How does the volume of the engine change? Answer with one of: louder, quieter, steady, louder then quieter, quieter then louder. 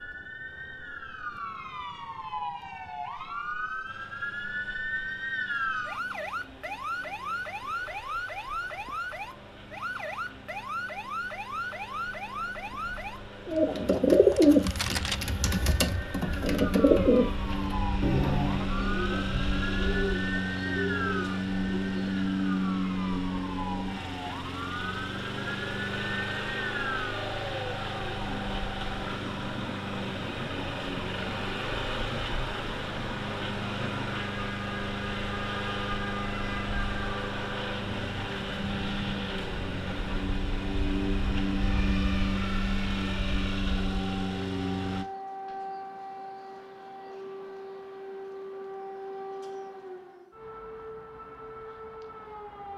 louder.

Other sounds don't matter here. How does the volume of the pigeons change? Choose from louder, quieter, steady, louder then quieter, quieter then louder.
quieter.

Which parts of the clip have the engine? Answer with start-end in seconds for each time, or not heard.
3.9-45.0.